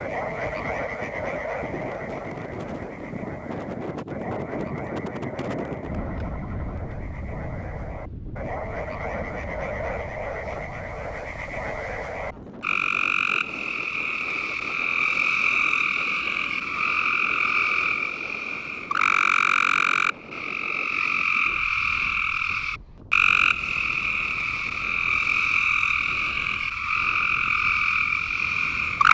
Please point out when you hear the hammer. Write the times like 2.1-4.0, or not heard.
not heard.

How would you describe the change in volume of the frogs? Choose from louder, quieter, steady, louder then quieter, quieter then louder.
louder.